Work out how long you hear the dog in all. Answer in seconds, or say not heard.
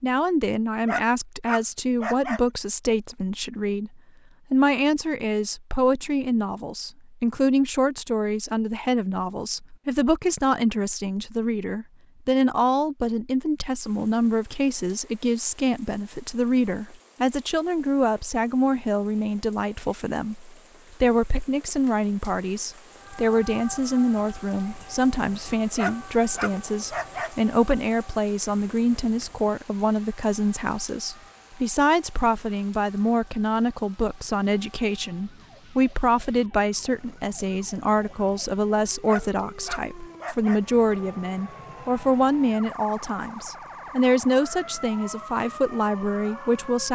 5 s.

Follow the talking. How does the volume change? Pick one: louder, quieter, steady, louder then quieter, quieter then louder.
steady.